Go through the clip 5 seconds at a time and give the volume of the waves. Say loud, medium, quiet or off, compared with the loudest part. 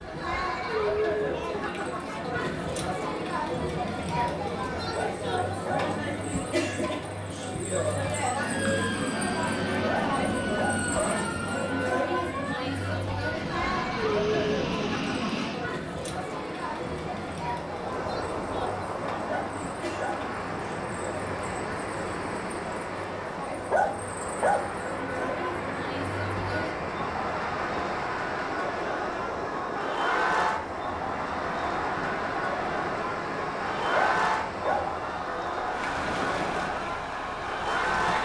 off, off, off, loud, loud, loud, loud, loud.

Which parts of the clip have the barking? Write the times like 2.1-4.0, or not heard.
4.9-5.8, 9.8-10.8, 19.2-20.2, 23.7-24.6, 33.9-34.9.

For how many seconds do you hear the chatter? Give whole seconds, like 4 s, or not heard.
38 s.